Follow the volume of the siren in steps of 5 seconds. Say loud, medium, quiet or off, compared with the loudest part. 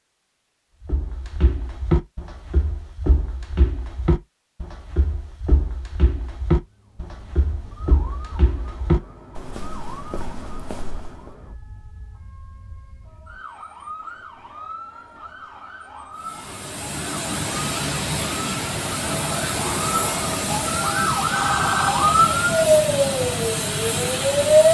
off, quiet, quiet, quiet, loud.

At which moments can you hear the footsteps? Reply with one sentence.
You can hear the footsteps from 0.8 to 11.3 s.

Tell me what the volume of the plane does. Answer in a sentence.
The loudness of the plane stays about the same.